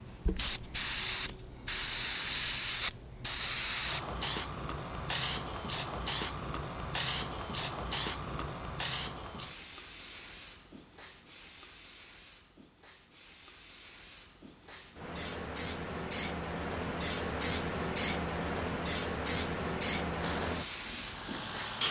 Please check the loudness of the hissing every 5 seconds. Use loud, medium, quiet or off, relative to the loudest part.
loud, loud, quiet, loud, loud.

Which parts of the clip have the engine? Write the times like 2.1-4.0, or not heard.
20.2-21.8.